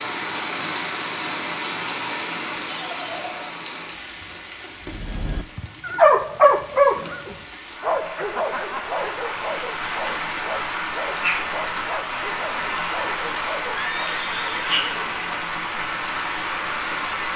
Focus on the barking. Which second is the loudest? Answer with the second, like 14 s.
6 s.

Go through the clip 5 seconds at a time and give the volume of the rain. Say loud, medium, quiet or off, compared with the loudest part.
loud, medium, loud, loud.